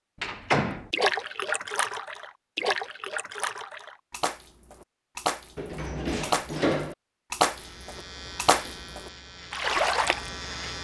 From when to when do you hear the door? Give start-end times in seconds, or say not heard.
0.2-0.9, 5.5-7.0.